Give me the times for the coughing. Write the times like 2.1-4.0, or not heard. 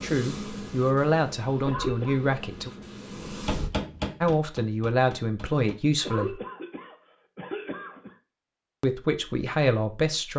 1.6-2.2, 6.0-8.2.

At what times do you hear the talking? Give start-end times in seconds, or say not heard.
0.0-2.7, 4.2-6.4, 8.8-10.3.